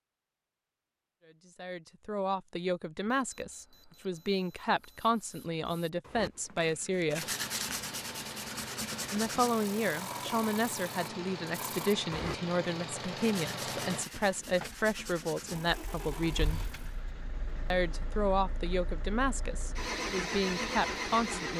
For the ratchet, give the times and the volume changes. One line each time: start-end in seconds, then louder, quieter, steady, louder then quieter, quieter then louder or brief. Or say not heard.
not heard.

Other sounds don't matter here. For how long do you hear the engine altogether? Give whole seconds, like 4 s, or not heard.
14 s.